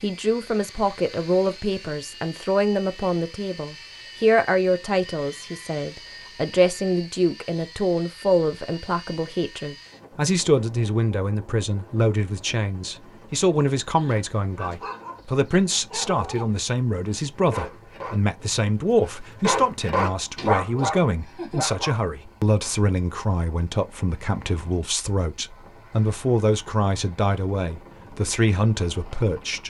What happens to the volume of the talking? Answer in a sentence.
The volume of the talking stays about the same.